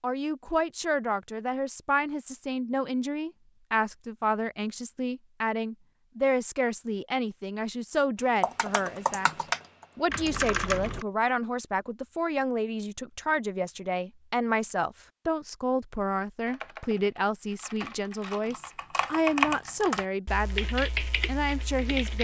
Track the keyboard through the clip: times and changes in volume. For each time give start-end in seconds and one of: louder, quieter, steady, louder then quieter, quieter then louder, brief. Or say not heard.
8.4-11.1 brief
16.4-22.2 louder then quieter.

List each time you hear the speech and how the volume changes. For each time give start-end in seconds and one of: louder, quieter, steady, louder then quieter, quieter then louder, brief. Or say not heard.
0.0-22.2 steady.